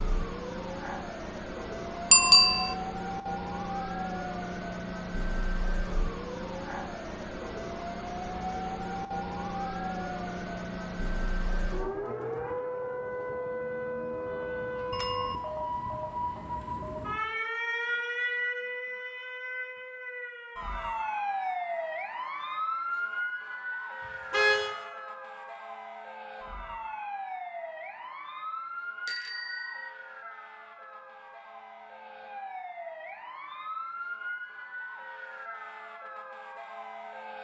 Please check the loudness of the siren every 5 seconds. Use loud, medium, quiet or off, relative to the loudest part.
loud, loud, loud, loud, loud, medium, medium, medium.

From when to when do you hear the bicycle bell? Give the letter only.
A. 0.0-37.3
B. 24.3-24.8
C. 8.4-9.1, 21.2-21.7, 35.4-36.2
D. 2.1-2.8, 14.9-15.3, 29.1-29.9
D.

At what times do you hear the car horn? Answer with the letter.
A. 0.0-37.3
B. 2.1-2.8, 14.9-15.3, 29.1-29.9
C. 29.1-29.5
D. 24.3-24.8
D.